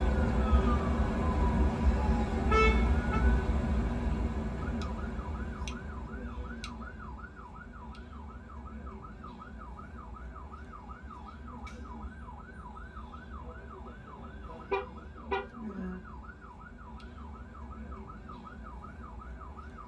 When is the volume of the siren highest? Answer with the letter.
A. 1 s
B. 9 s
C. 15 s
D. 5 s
A.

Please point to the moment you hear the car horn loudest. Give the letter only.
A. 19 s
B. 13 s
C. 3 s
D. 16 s
C.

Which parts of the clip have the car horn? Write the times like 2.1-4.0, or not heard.
2.5-3.2, 14.7-15.4.